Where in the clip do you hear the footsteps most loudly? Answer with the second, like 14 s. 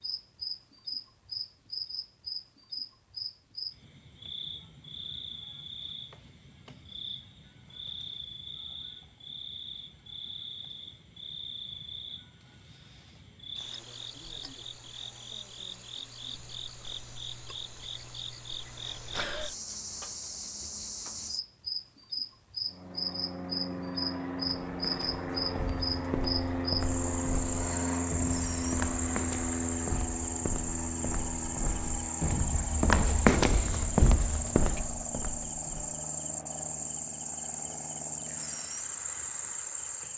33 s.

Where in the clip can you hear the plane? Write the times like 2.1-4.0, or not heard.
22.6-39.0.